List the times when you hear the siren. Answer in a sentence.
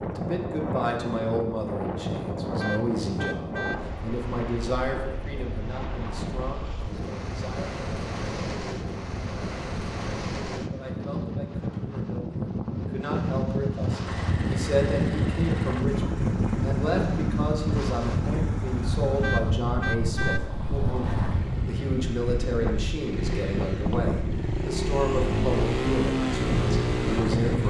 You can't hear the siren here.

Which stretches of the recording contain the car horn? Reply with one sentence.
The car horn can be heard from 2.6 to 3.8 s and from 19.2 to 20.4 s.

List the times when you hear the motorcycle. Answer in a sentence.
You can hear the motorcycle from 14.1 to 27.6 s.